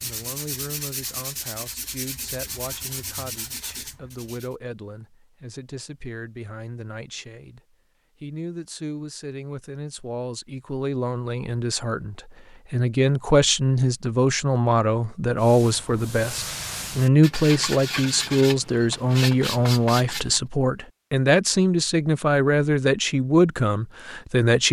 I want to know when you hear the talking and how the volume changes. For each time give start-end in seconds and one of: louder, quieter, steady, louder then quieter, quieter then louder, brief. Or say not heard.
0.0-24.6 louder.